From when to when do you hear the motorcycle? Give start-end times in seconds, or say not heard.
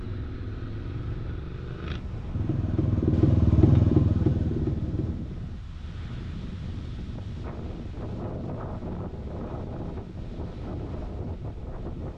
0.0-5.2.